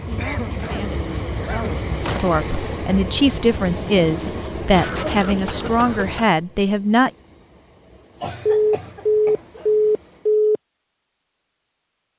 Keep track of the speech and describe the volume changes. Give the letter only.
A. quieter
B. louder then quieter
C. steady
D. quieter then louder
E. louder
E.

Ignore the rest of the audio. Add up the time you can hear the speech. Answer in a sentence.
You can hear the speech for 7 seconds altogether.